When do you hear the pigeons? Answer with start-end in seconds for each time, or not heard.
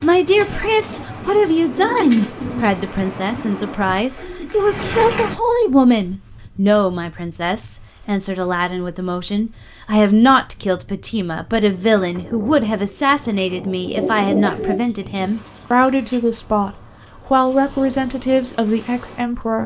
0.0-5.3, 11.7-14.8.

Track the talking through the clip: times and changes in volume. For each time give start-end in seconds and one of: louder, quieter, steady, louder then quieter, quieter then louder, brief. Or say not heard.
0.0-19.6 steady.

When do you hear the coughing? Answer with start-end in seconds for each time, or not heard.
not heard.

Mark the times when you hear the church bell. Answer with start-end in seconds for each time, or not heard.
not heard.